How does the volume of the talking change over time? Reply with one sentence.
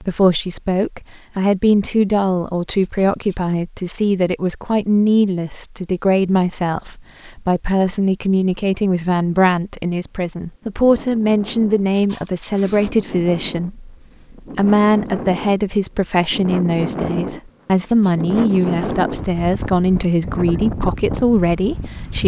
The loudness of the talking stays about the same.